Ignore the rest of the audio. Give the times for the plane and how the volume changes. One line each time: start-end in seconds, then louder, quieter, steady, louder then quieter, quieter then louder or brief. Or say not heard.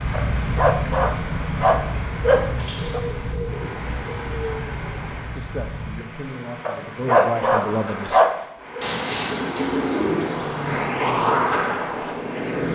0.0-8.2 quieter
10.1-12.7 brief.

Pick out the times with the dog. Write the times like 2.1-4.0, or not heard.
0.1-3.0, 6.7-8.8.